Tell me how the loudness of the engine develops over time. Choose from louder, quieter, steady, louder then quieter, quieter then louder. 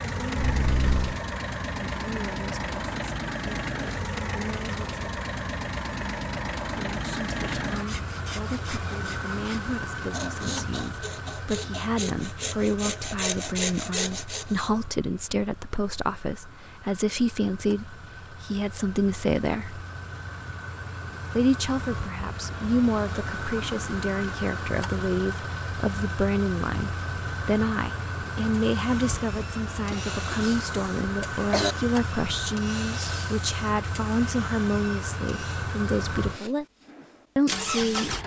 quieter then louder.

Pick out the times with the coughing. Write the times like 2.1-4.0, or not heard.
0.3-1.2, 29.9-30.4, 31.2-31.8.